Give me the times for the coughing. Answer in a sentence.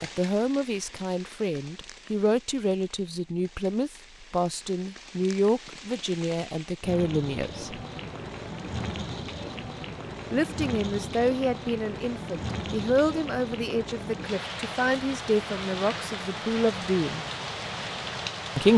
You can't hear the coughing here.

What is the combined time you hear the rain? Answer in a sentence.
The rain can be heard for 19 seconds in total.